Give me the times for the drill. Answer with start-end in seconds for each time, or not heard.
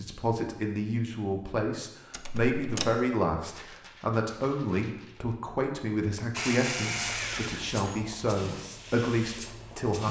6.3-8.0.